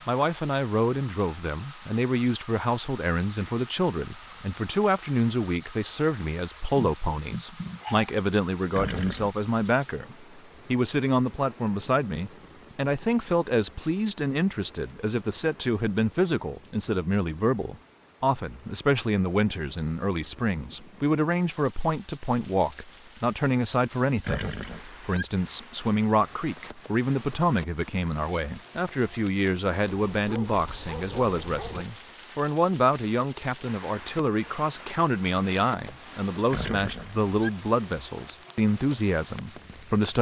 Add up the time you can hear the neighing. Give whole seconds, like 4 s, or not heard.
3 s.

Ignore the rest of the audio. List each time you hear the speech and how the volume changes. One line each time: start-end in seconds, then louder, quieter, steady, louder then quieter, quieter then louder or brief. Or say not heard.
0.1-40.1 steady.